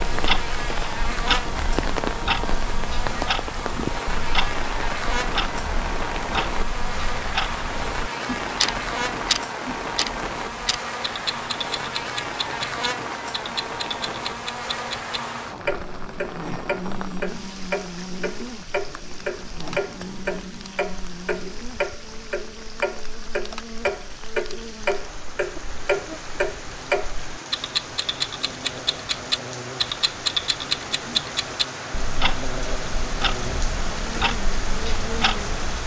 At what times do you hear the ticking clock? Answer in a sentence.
The ticking clock can be heard from 0.0 to 35.8 s.